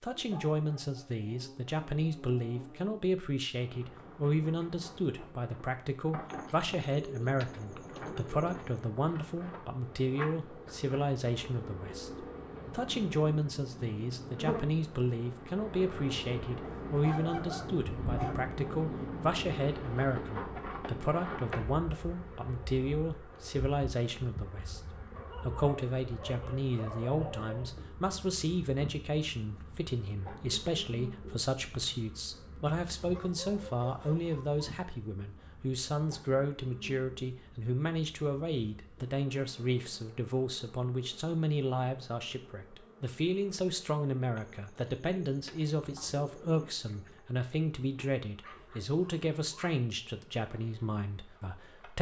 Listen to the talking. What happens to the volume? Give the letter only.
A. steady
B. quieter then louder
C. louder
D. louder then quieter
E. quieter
A.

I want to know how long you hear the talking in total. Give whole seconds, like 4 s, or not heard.
52 s.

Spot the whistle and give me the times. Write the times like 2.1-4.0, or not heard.
not heard.